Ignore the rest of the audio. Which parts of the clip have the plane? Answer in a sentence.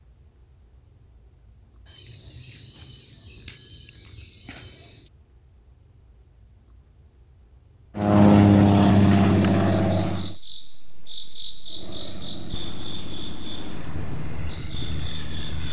You can hear the plane from 8.0 to 10.3 s and from 11.7 to 15.6 s.